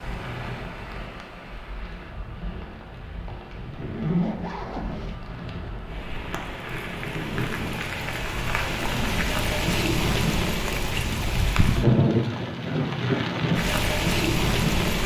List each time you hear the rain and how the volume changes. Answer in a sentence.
You can hear the rain from 0.0 to 15.0 s, getting louder.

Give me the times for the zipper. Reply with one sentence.
You can hear the zipper from 3.8 to 5.2 s.